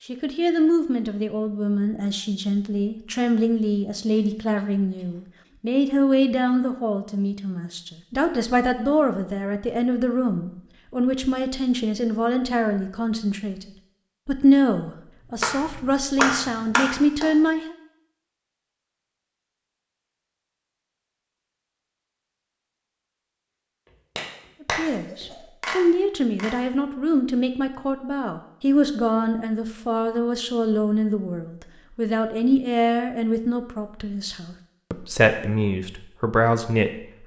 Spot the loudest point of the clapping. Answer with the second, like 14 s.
16 s.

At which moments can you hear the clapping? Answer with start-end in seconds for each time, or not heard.
15.4-17.3, 23.9-26.6.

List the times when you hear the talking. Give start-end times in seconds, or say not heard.
0.1-13.7, 14.2-17.8, 24.6-36.9.